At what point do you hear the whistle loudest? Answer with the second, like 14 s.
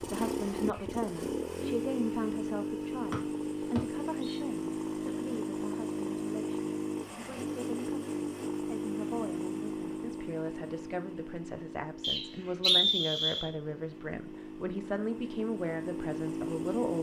13 s.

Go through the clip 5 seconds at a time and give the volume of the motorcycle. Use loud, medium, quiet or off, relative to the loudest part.
loud, loud, medium, loud.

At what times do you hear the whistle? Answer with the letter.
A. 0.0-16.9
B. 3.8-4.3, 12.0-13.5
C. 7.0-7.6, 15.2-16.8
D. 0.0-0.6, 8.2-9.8
B.